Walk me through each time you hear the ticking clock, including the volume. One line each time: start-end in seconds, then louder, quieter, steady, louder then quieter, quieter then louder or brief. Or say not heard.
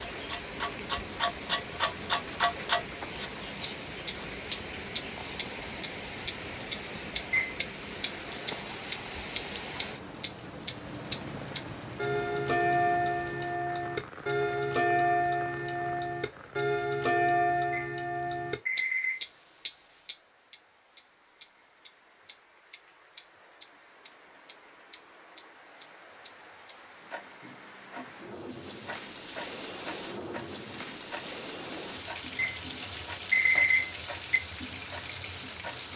0.0-35.9 quieter.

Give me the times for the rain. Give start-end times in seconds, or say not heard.
0.0-35.9.